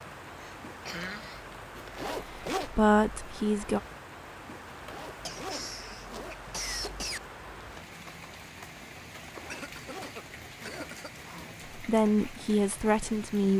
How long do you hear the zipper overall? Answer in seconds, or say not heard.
5 s.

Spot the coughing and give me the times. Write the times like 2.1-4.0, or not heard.
0.4-1.4, 5.2-7.2, 9.4-11.1.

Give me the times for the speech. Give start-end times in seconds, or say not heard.
2.6-3.8, 11.8-13.5.